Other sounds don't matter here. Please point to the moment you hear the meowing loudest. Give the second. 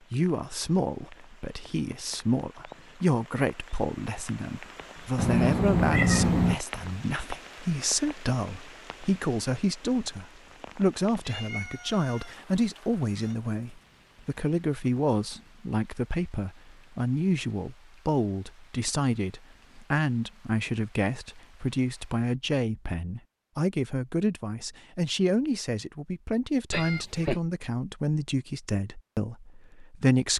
6 s.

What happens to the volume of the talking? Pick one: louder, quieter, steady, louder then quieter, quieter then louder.
steady.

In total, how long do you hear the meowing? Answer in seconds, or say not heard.
4 s.